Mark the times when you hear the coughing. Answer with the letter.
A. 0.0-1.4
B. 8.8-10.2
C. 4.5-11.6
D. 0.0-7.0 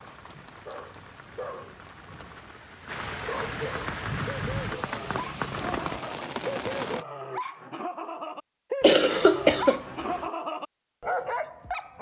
B.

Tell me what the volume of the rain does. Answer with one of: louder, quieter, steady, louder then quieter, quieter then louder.
louder.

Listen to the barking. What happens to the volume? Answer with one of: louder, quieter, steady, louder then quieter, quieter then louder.
louder.